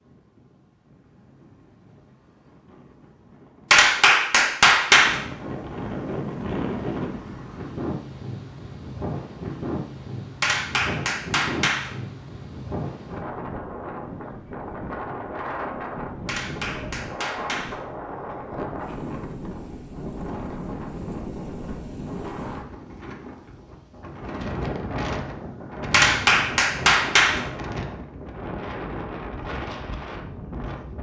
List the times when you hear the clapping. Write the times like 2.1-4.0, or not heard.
3.7-5.2, 10.4-11.9, 16.2-17.8, 25.9-27.4.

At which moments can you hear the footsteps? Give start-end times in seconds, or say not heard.
not heard.